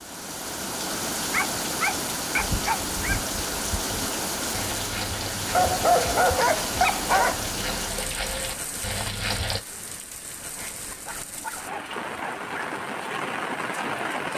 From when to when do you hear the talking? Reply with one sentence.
The talking can't be heard in this clip.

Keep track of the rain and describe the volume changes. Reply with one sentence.
The volume of the rain goes down, then up.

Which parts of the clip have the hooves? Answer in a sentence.
The hooves can be heard from 2.4 to 9.6 s.